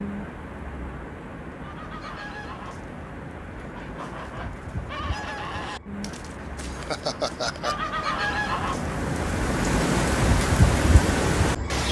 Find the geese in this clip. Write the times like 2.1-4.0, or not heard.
1.6-8.9.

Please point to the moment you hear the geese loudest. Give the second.
8 s.